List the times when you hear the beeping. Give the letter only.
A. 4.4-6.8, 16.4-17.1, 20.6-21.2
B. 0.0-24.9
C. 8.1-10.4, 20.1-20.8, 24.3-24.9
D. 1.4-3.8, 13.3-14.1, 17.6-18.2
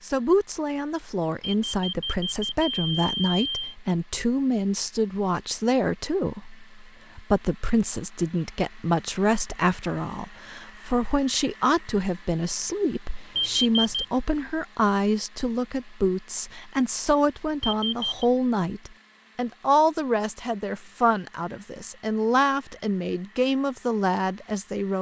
D.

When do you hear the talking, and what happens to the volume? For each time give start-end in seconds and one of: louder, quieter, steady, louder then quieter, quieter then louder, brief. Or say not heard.
0.0-24.9 steady.